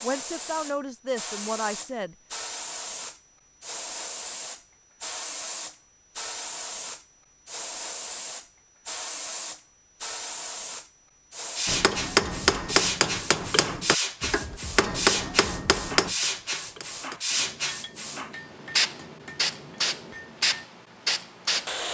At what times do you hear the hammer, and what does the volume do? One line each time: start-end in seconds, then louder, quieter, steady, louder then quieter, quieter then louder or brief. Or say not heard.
11.7-20.6 quieter.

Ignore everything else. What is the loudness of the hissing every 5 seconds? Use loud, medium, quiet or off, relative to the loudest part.
medium, medium, loud, loud, loud.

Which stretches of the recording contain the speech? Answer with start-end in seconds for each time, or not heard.
0.0-2.1.